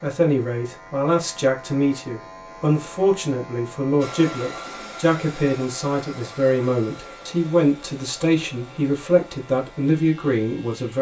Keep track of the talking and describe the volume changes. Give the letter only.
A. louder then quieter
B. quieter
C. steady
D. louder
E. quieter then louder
C.